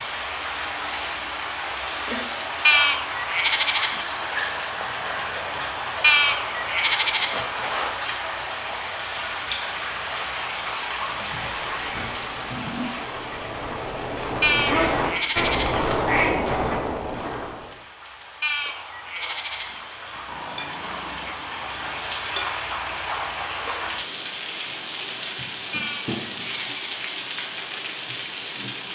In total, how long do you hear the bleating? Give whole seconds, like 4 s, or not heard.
7 s.